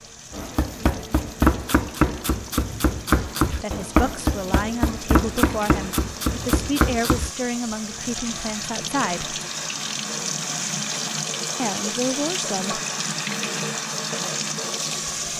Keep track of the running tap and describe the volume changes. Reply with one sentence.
The volume of the running tap goes up.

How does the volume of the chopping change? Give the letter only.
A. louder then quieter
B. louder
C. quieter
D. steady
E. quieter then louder
D.